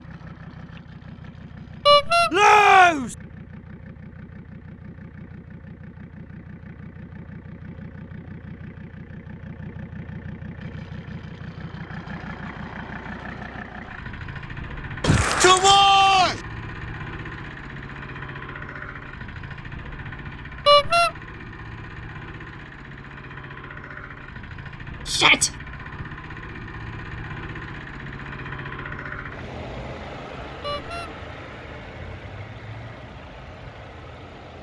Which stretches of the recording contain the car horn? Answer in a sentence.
You can hear the car horn from 1.9 to 2.3 s, from 20.6 to 21.1 s and from 30.6 to 31.1 s.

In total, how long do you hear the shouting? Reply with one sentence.
You can hear the shouting for 3 seconds altogether.